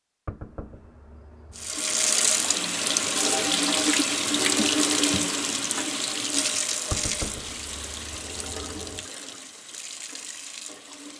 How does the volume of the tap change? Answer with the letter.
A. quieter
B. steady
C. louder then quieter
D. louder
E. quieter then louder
A.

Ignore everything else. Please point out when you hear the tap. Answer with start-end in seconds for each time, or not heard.
1.6-11.1.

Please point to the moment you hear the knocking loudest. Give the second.
7 s.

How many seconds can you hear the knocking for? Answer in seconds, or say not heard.
4 s.